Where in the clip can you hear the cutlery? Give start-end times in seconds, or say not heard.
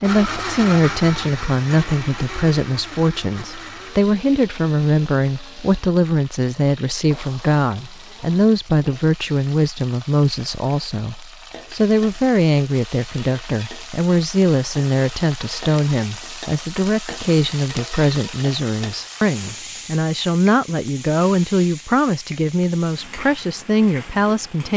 not heard.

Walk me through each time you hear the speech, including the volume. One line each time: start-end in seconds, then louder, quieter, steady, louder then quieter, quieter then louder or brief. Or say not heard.
0.0-24.7 steady.